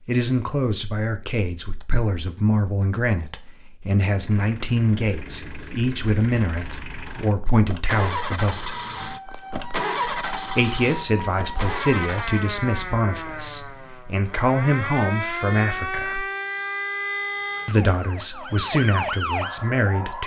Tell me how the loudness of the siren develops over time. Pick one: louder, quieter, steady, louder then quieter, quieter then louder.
louder.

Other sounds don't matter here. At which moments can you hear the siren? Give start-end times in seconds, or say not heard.
8.8-20.2.